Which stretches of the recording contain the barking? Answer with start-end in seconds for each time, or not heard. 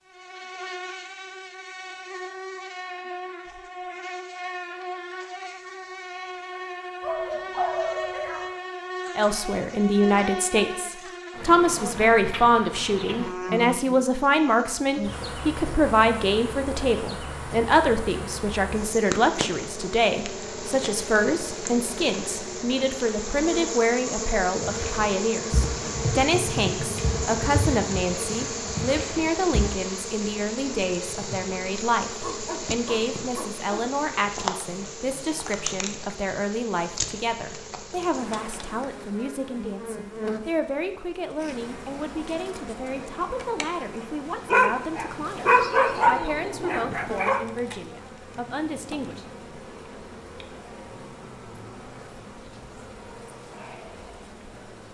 7.0-8.6, 32.2-33.9, 44.5-47.5.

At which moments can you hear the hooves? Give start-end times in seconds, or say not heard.
24.6-29.7.